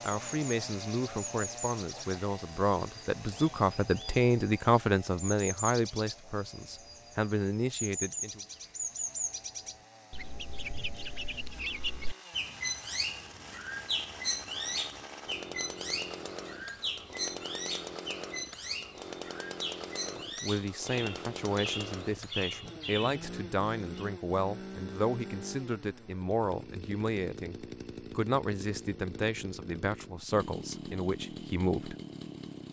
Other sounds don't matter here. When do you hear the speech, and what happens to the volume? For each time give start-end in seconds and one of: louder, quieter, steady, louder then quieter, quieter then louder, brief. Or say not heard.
0.0-8.4 louder then quieter
20.2-31.9 steady.